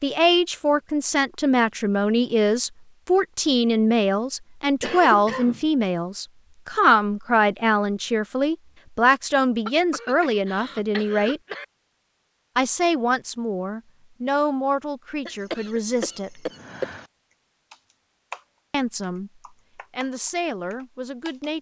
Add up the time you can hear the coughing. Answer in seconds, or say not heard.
5 s.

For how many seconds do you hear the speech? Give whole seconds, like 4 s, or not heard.
18 s.